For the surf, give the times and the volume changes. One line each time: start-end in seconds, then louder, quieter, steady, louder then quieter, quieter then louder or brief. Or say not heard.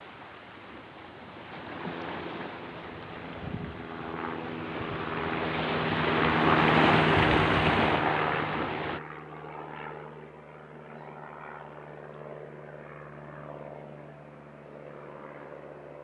0.0-9.0 louder.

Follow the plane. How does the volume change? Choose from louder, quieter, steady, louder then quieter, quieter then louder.
louder then quieter.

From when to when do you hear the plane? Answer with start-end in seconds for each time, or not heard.
1.6-15.9.